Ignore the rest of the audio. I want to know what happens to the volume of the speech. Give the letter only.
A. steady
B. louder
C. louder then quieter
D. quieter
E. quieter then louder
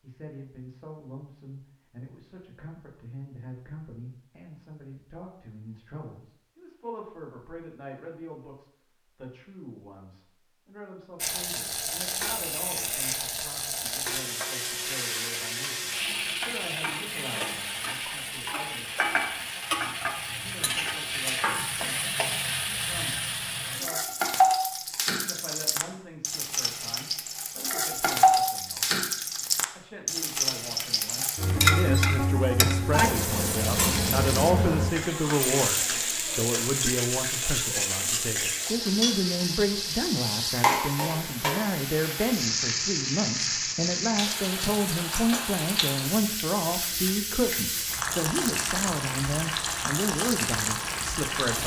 B.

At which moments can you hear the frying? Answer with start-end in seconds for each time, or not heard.
11.2-51.6.